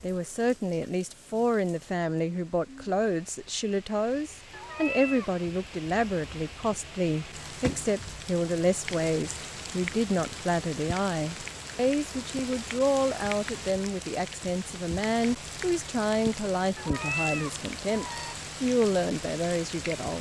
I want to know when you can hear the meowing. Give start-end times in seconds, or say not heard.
4.5-5.4, 16.8-18.4.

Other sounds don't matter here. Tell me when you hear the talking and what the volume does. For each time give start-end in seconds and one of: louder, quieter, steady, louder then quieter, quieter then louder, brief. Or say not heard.
0.0-20.1 steady.